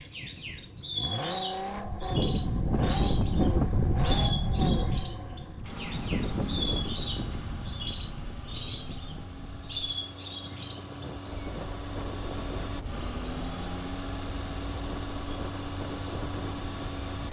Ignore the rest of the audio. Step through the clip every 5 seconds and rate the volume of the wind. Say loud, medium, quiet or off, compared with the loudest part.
loud, medium, quiet, quiet.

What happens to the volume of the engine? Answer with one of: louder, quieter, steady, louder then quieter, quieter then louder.
quieter then louder.